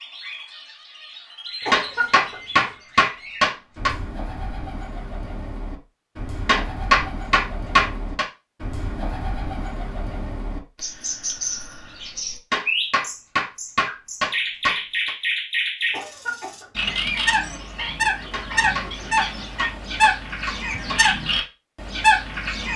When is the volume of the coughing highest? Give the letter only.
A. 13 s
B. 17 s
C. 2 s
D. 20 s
C.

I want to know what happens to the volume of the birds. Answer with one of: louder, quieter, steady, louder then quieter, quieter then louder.
louder.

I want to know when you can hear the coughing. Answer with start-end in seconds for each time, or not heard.
1.6-2.8, 15.9-17.0.